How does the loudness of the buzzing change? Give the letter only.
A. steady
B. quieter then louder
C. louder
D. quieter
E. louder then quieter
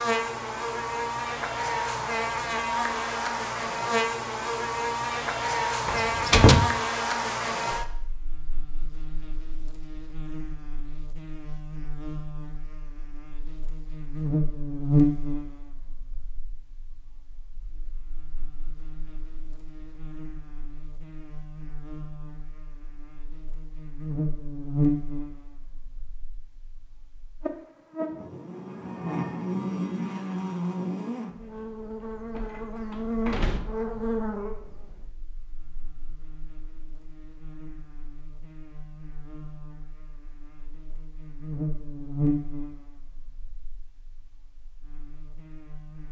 D.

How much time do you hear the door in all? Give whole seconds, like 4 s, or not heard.
2 s.